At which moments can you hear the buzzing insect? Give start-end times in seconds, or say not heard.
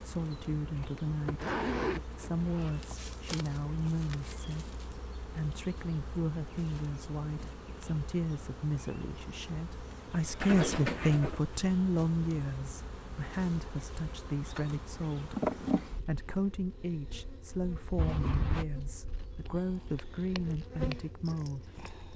0.0-22.1.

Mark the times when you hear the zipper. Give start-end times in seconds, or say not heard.
1.4-3.0, 10.4-11.4, 17.9-18.6.